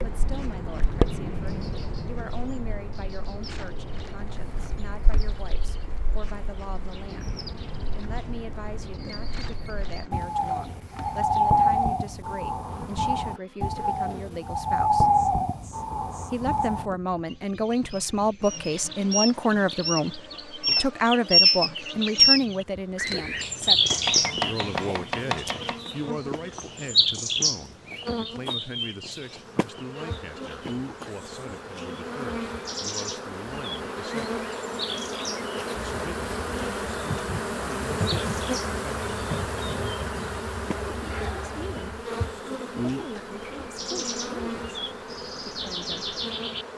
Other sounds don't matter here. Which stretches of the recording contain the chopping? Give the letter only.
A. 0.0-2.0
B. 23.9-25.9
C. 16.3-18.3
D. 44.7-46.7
B.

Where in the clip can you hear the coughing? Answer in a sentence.
The coughing can't be heard in this clip.